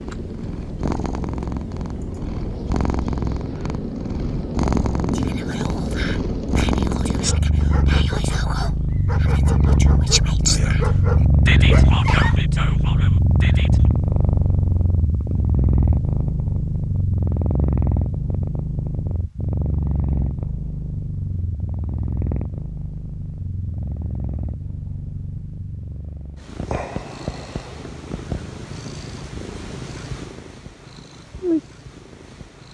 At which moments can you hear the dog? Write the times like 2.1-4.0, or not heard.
7.2-12.4.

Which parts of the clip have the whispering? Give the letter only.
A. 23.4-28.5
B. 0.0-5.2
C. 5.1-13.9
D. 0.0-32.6
C.